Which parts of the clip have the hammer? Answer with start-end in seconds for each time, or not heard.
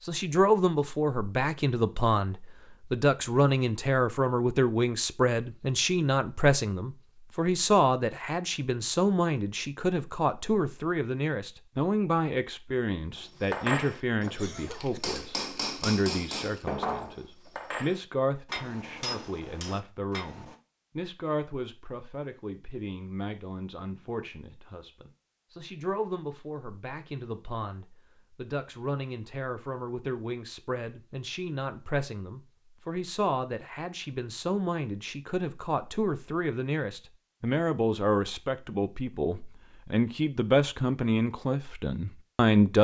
13.2-20.6.